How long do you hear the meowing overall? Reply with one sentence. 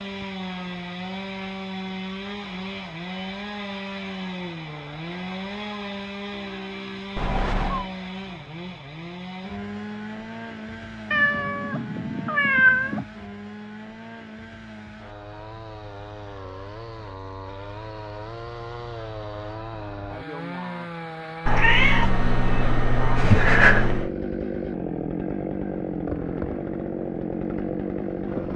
You can hear the meowing for 5 seconds altogether.